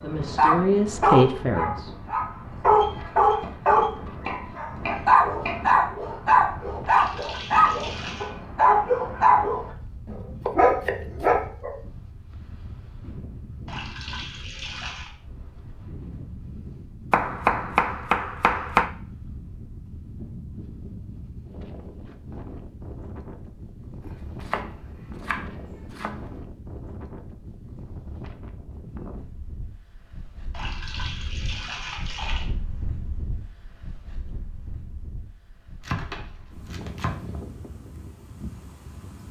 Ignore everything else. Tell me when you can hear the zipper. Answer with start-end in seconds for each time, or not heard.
not heard.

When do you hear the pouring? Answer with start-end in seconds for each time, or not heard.
6.8-8.3, 13.7-15.1, 30.5-32.5.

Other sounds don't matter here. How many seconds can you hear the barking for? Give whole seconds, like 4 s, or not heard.
12 s.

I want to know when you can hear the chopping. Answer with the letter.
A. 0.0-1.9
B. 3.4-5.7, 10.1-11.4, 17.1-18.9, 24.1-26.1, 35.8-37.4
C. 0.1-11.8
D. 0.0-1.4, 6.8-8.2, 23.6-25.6
B.